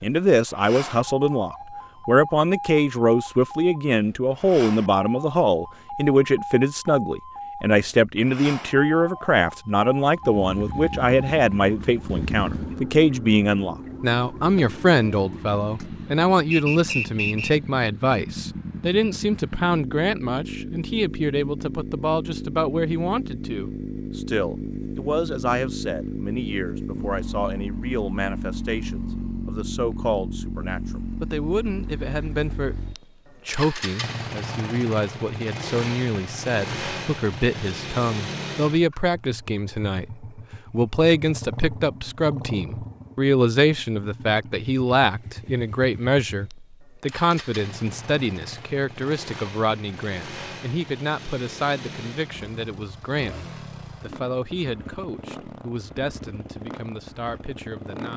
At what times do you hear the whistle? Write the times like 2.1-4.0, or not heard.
16.5-17.6.